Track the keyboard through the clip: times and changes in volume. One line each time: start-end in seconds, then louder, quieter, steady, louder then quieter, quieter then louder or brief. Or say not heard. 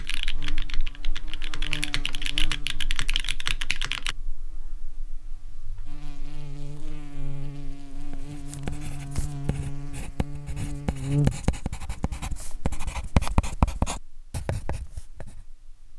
0.0-4.2 louder.